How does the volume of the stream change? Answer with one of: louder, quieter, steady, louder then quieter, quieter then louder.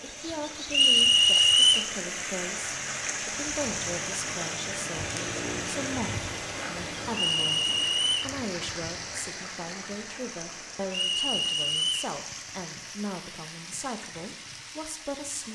quieter.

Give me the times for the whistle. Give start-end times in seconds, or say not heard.
0.7-1.9, 7.1-8.3, 10.9-12.2.